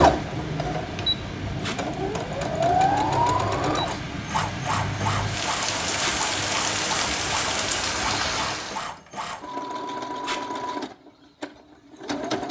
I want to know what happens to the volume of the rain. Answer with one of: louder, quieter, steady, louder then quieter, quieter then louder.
louder.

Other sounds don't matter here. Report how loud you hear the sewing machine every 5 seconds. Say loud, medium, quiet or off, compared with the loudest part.
loud, medium, medium.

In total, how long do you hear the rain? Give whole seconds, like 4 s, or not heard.
9 s.